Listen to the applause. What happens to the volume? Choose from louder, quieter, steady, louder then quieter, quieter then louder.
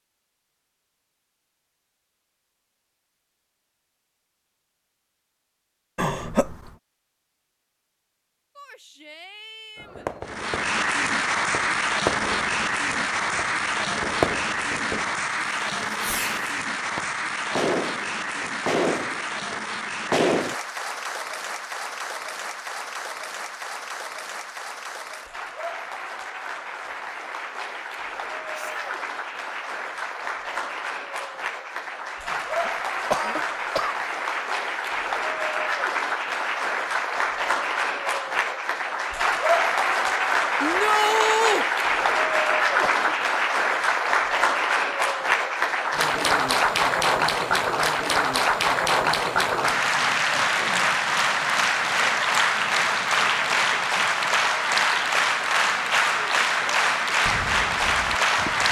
quieter then louder.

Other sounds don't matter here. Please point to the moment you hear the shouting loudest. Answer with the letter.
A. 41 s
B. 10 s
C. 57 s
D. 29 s
A.